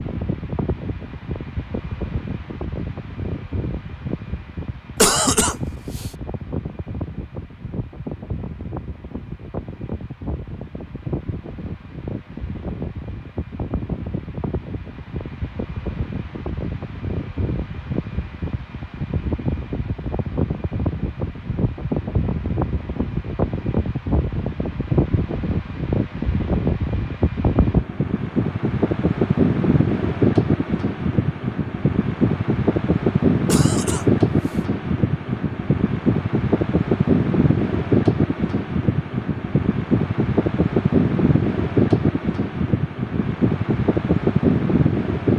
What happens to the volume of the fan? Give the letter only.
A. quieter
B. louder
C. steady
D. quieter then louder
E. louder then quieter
B.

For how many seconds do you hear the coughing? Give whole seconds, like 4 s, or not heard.
2 s.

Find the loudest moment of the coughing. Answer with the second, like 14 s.
5 s.